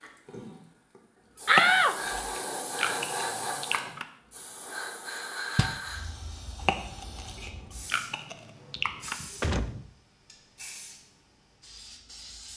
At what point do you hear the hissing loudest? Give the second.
3 s.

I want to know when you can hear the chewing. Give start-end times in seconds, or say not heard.
1.4-4.0, 6.5-9.2.